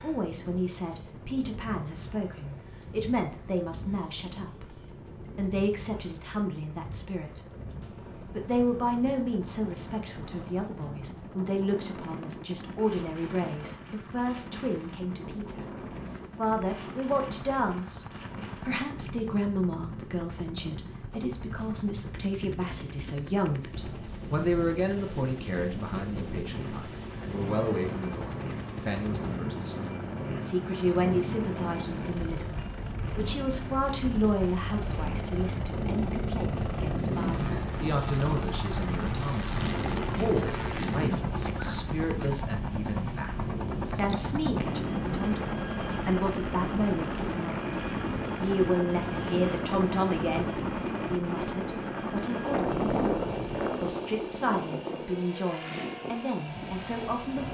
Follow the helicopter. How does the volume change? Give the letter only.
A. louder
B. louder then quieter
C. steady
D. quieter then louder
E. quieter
A.